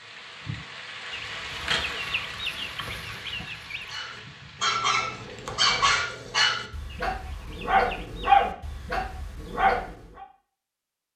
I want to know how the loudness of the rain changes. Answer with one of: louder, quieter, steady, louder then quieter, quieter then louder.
louder then quieter.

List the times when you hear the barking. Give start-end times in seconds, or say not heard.
3.9-10.2.